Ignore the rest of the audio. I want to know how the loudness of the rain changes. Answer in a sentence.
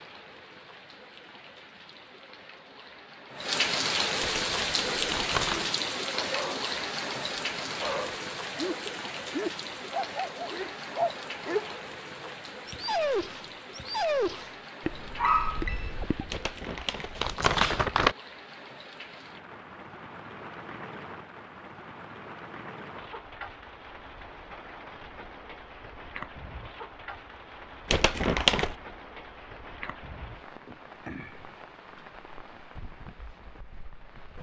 The volume of the rain goes down.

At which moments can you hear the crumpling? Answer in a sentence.
The crumpling can be heard from 4.2 to 5.7 s, from 16.3 to 18.1 s and from 27.9 to 28.8 s.